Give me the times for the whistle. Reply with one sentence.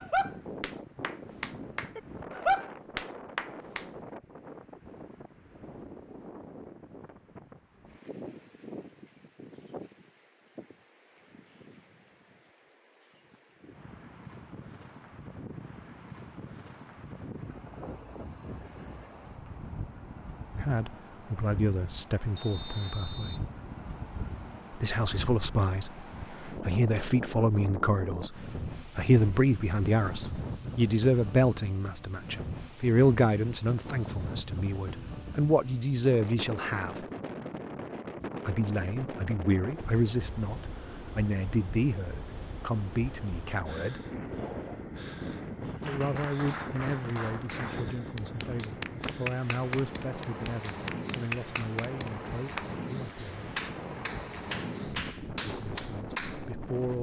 The whistle can be heard from 22.4 to 23.4 s.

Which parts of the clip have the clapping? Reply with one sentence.
The clapping can be heard from 0.0 to 3.9 s and from 45.8 to 56.5 s.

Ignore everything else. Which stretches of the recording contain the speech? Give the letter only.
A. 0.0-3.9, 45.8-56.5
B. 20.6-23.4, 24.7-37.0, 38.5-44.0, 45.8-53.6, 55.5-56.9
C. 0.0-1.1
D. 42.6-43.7
B.